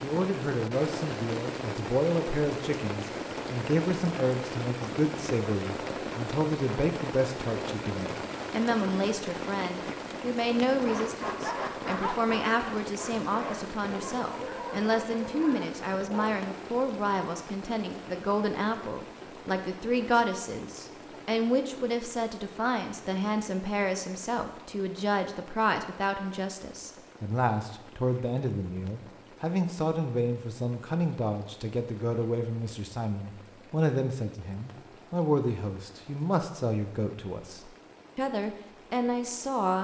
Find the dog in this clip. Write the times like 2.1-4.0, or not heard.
10.8-16.4.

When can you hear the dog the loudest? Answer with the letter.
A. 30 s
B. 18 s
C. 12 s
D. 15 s
C.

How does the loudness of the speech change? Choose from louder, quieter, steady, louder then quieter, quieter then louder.
steady.